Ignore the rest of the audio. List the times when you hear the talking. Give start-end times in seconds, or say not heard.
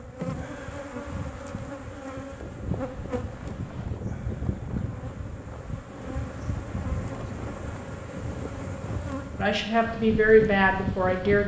9.3-11.4.